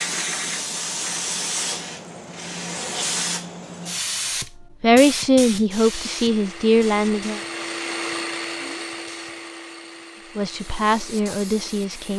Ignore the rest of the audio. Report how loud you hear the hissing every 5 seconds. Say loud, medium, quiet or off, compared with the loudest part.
loud, medium, quiet.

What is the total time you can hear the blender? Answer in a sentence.
The blender can be heard for 6 seconds in total.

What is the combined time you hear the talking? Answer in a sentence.
You can hear the talking for 4 seconds altogether.